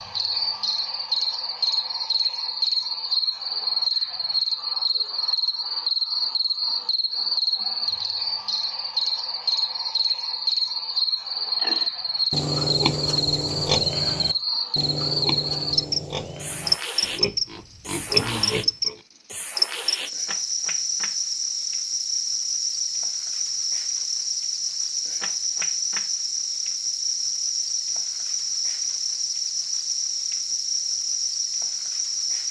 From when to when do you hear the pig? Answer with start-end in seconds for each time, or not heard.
11.6-19.0.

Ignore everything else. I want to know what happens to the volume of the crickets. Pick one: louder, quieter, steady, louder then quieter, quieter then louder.
steady.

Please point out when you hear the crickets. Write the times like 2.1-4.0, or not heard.
0.0-32.4.